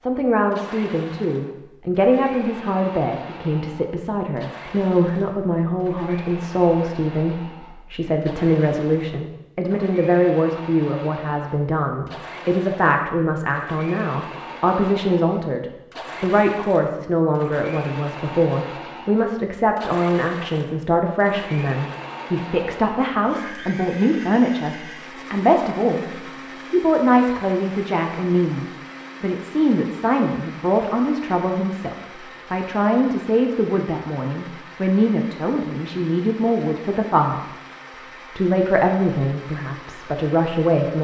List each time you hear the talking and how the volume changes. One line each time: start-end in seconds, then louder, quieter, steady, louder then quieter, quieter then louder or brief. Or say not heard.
0.1-37.5 steady
38.4-40.9 brief.